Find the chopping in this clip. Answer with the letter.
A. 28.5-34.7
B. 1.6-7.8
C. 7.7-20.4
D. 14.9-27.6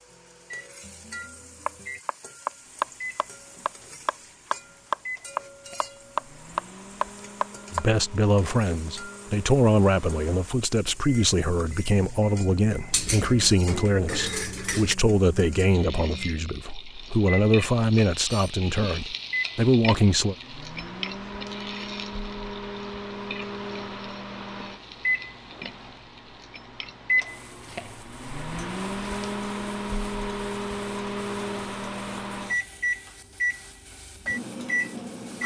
B.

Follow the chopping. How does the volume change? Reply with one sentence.
The volume of the chopping goes down, then up.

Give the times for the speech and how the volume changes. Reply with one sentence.
The speech can be heard from 7.7 to 20.4 s, at a steady volume.